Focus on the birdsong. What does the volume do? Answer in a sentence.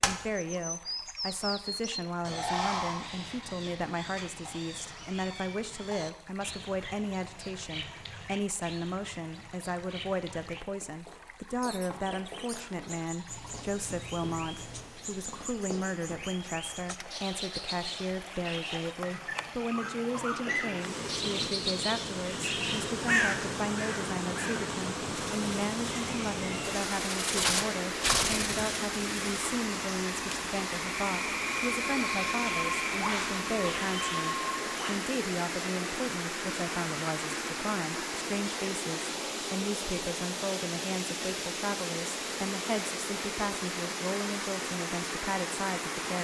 The volume of the birdsong goes down, then up.